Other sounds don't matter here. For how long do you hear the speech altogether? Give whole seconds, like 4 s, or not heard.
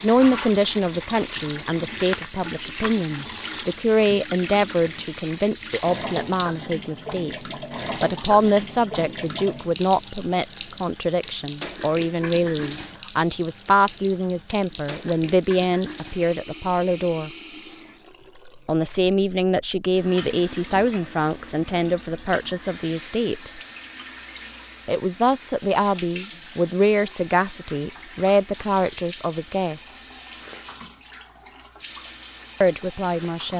28 s.